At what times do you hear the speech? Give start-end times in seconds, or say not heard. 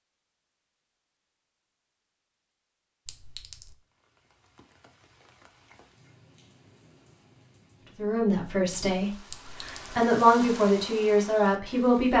8.0-12.1.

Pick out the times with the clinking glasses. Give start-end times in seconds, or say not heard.
3.0-3.8, 9.3-9.8.